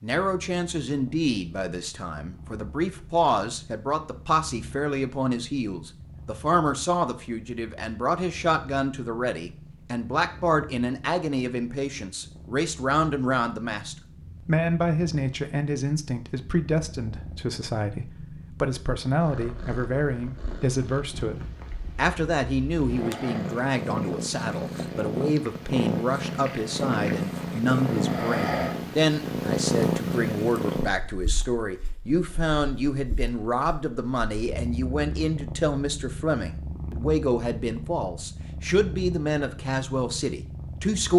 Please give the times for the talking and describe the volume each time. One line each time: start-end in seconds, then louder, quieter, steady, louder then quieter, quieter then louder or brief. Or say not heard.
0.0-41.1 steady.